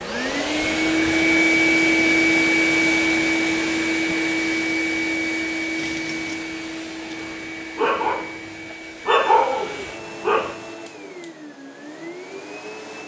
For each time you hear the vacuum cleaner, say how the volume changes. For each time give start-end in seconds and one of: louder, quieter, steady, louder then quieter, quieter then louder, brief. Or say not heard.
0.0-13.0 quieter.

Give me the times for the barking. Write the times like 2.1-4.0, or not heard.
7.2-10.6.